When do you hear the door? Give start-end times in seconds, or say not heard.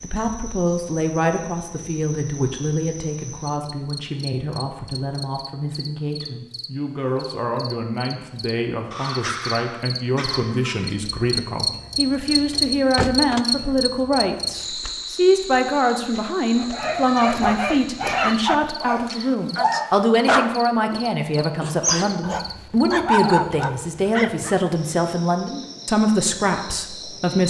12.5-13.4.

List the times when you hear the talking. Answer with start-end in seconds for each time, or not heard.
0.0-27.4.